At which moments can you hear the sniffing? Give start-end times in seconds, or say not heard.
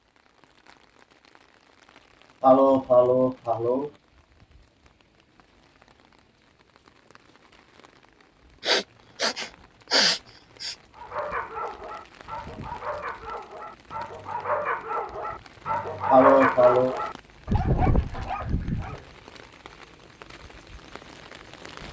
2.4-3.9, 8.7-10.8, 16.1-16.9.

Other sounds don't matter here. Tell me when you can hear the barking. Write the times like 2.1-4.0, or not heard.
10.9-19.0.